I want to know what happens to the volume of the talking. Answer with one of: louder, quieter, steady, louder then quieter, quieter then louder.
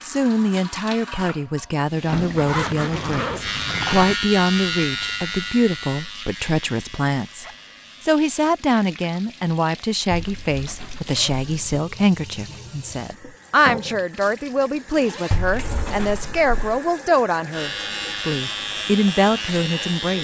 steady.